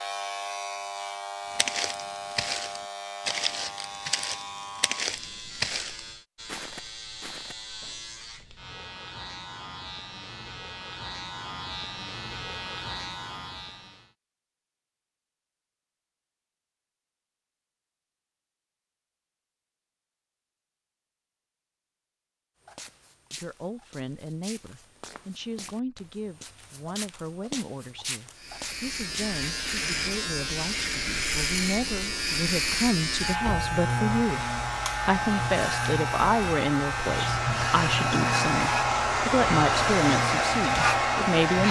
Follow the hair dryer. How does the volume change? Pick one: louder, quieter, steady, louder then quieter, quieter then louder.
louder.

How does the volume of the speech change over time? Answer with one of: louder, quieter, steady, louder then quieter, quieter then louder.
louder.